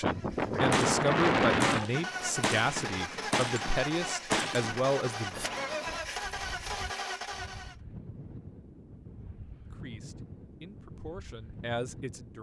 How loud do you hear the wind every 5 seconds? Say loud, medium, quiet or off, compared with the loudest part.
loud, quiet, quiet.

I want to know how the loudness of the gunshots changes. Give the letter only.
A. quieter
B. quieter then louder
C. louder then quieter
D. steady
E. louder
B.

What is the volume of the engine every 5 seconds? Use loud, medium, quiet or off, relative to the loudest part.
loud, loud, off.